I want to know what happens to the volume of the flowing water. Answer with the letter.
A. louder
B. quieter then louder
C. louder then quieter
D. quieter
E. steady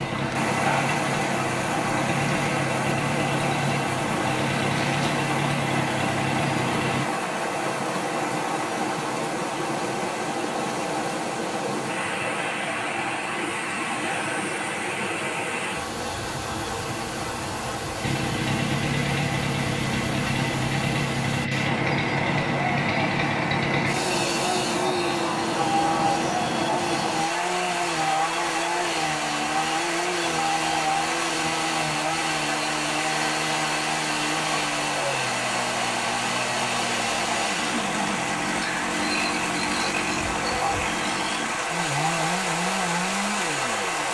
E.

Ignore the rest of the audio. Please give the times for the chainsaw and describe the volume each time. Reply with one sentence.
The chainsaw can be heard from 0.0 to 7.0 s, at a steady volume; and from 18.0 to 44.0 s, at a steady volume.